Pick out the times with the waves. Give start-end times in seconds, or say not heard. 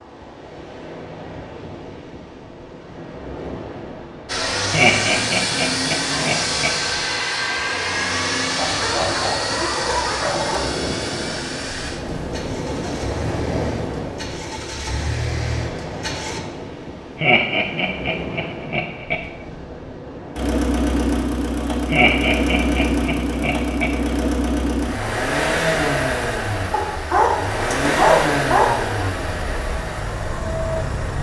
0.0-20.6.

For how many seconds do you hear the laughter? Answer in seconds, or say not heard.
6 s.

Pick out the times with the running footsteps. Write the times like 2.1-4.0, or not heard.
not heard.